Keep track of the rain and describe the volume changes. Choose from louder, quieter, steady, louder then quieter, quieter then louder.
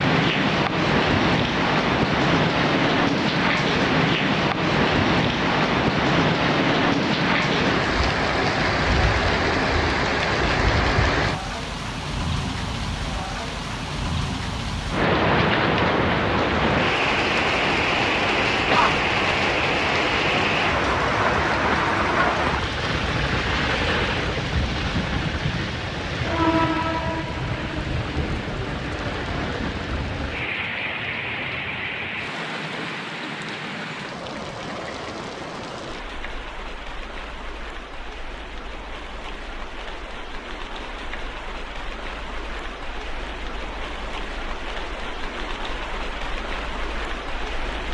quieter.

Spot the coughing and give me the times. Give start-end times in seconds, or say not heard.
18.5-19.2.